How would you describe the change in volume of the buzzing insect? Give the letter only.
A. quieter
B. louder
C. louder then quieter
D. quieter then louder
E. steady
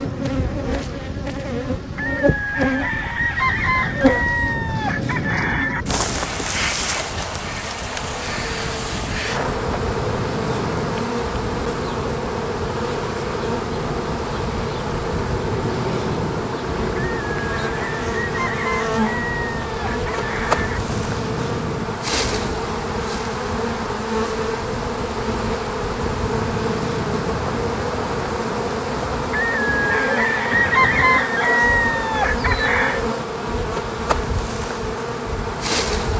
E.